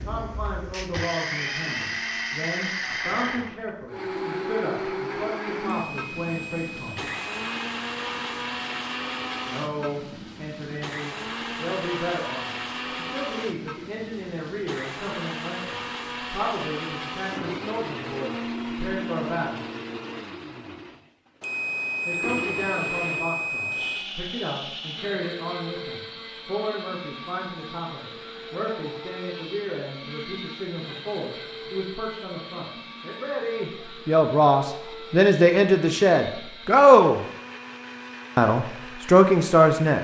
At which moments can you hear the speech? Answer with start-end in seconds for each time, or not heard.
0.1-7.0, 9.4-19.6, 22.1-37.2, 38.4-39.9.